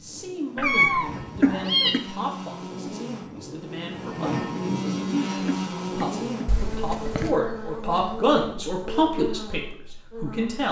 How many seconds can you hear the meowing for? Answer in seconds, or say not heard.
2 s.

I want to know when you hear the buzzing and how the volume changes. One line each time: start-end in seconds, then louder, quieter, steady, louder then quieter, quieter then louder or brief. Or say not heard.
0.0-10.6 louder then quieter.